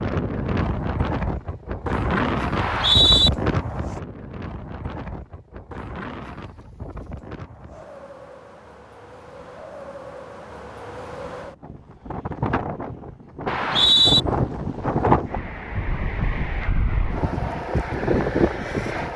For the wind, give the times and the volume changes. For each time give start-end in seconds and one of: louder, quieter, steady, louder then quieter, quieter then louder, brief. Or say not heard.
0.0-19.1 quieter then louder.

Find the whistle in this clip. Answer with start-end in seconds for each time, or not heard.
2.5-3.3, 13.4-14.2.